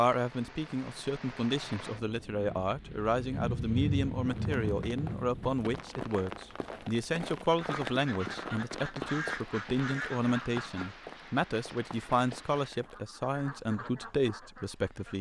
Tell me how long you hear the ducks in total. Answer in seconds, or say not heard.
6 s.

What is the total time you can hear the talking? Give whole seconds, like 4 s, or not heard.
15 s.